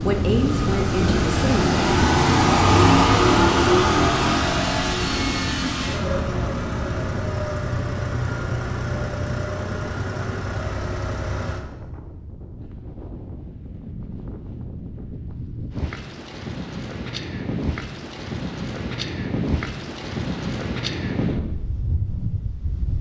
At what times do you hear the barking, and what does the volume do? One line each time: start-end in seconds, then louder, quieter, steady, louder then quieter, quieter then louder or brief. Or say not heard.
not heard.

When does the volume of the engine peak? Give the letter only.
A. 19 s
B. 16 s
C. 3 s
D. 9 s
C.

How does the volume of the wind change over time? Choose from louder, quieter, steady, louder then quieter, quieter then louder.
quieter then louder.